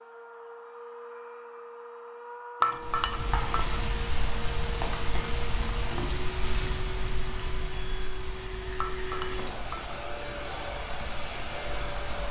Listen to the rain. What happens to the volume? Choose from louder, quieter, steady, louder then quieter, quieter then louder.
quieter.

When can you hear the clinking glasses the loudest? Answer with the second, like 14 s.
3 s.